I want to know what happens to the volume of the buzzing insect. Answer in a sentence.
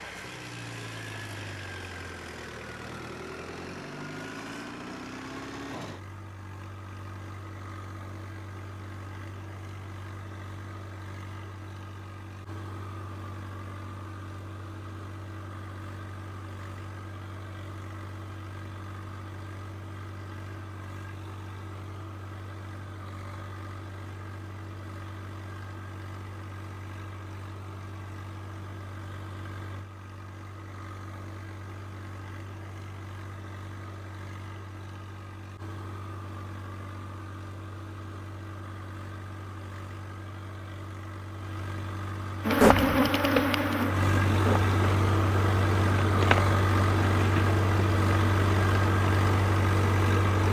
The loudness of the buzzing insect goes down.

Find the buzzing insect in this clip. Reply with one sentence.
You can hear the buzzing insect from 42.4 to 50.4 s.